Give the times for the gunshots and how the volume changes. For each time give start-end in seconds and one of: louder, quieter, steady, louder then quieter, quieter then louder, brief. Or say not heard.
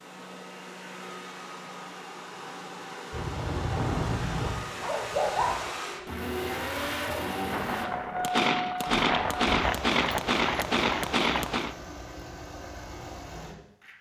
7.5-11.8 steady.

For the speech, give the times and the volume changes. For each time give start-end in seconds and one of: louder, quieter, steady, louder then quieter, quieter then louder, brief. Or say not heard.
not heard.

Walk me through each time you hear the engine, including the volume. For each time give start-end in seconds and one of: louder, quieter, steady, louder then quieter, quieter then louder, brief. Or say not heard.
0.0-13.9 louder then quieter.